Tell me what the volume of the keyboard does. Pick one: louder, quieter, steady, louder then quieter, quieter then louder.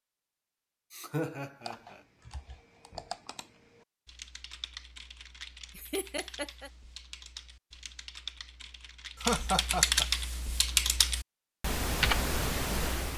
louder.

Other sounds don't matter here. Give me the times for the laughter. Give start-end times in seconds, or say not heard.
0.9-2.0, 5.8-6.7, 9.2-10.1.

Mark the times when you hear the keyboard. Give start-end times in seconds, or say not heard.
1.6-13.1.